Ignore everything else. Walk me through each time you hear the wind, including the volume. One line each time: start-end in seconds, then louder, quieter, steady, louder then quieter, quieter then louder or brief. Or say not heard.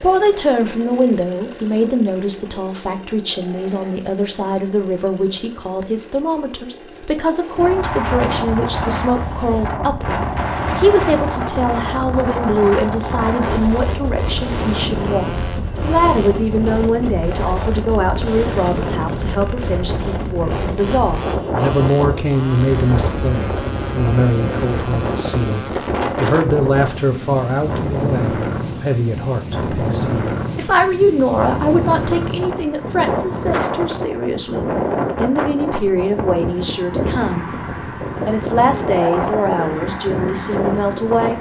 7.5-41.3 steady.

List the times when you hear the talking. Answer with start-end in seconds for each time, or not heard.
0.0-37.5, 38.2-41.3.